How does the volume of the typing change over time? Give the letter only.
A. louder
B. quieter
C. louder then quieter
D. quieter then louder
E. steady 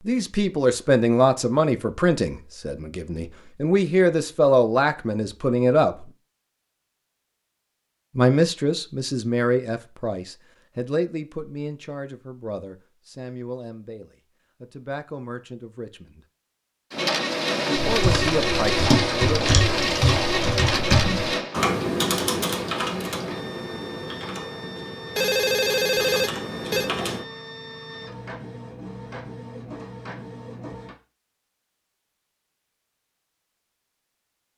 B.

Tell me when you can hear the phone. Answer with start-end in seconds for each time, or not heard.
25.1-26.9.